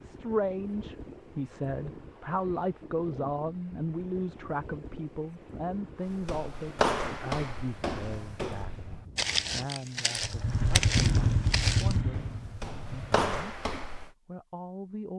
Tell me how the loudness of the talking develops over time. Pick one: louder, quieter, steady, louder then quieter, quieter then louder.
quieter.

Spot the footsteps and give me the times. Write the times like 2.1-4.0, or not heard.
6.0-14.1.